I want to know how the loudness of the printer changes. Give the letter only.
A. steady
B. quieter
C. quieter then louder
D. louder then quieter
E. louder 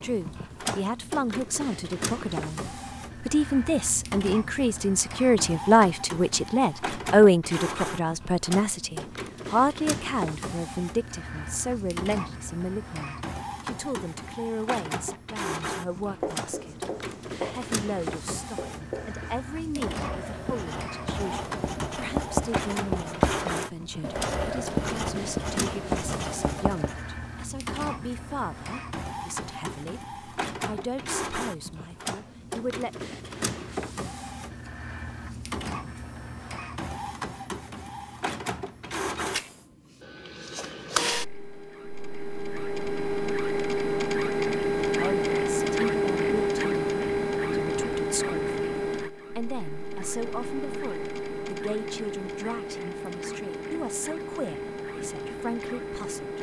E.